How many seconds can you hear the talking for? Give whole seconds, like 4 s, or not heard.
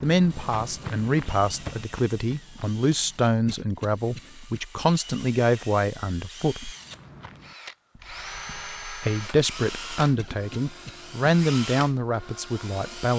11 s.